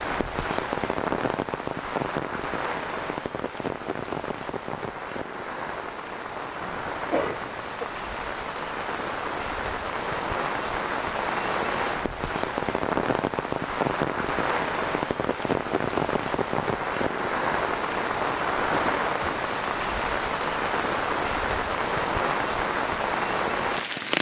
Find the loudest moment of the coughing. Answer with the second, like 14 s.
7 s.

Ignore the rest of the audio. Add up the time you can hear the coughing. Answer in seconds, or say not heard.
2 s.